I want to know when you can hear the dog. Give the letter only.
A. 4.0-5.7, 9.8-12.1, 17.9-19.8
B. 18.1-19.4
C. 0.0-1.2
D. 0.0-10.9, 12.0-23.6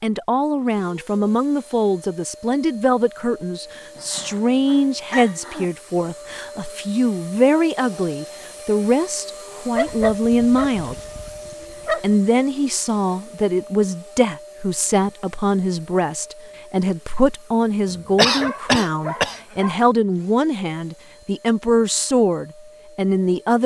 A.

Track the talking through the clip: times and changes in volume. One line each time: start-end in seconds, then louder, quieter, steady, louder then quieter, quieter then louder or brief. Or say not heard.
0.0-10.9 steady
12.0-23.6 steady.